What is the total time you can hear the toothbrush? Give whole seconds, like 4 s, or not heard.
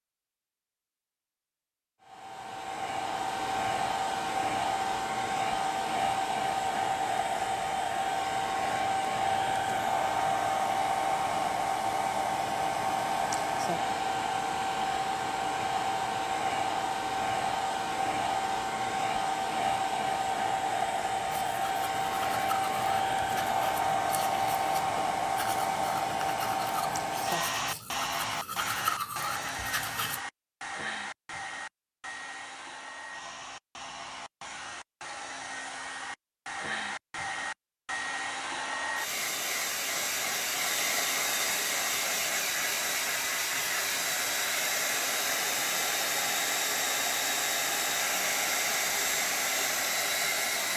9 s.